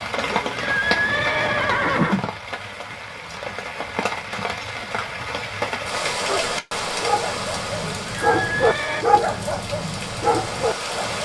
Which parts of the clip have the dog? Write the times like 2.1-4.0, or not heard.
6.2-11.2.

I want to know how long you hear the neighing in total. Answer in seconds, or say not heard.
3 s.